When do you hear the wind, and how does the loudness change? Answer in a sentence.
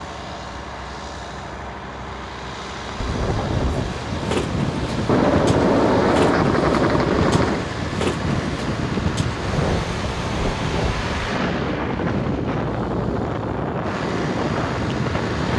The wind can be heard from 3.0 to 15.5 s, at a steady volume.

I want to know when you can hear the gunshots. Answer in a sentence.
You can hear the gunshots from 5.0 to 7.7 s.